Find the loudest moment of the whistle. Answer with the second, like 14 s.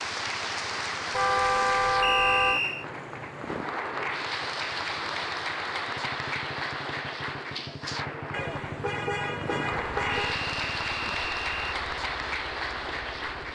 2 s.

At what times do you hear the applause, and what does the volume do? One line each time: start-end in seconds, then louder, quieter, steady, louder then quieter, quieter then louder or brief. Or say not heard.
0.0-13.5 steady.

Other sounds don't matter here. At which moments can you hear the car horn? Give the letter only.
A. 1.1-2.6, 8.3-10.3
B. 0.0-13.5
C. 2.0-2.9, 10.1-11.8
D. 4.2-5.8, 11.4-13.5
A.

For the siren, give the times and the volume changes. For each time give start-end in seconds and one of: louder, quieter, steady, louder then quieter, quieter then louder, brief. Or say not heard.
not heard.